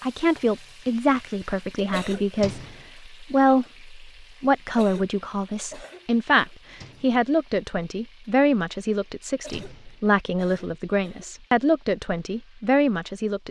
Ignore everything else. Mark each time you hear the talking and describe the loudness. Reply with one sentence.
You can hear the talking from 0.0 to 13.4 s, at a steady volume.